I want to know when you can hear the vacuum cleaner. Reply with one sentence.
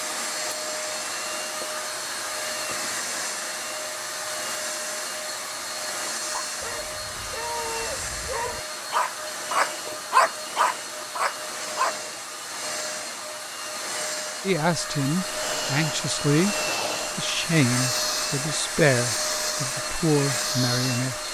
The vacuum cleaner can be heard from 0.0 to 21.2 s.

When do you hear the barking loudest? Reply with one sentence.
The loudest moment of the barking is at 10 seconds.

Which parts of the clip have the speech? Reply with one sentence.
You can hear the speech from 14.4 to 16.6 s and from 17.1 to 21.2 s.